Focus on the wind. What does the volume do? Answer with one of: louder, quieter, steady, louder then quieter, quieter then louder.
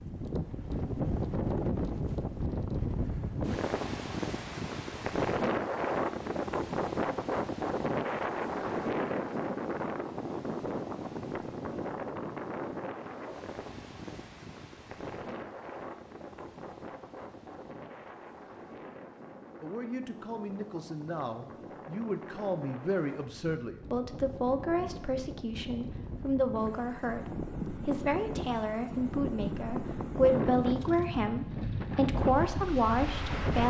quieter then louder.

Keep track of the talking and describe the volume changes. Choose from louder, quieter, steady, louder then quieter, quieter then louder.
louder.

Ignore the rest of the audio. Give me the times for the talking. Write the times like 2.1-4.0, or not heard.
19.6-33.6.